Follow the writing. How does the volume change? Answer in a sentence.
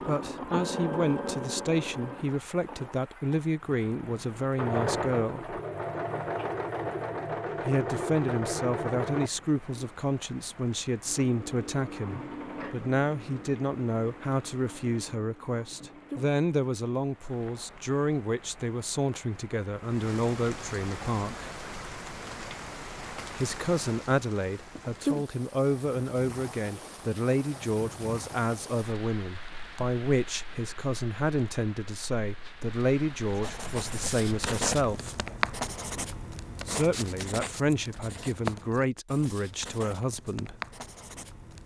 The loudness of the writing goes down.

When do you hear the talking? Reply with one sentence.
The talking can be heard from 0.1 to 5.6 s, from 7.7 to 21.5 s, from 23.4 to 35.1 s and from 36.6 to 40.5 s.